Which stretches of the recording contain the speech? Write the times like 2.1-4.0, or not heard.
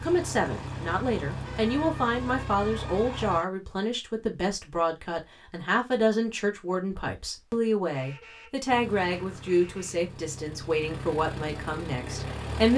0.0-12.7.